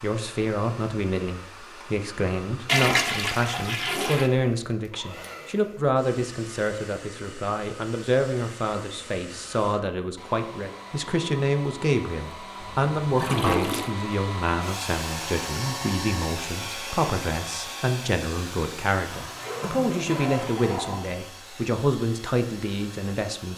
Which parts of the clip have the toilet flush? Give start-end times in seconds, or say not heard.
2.6-4.3, 12.6-13.9, 19.1-21.1.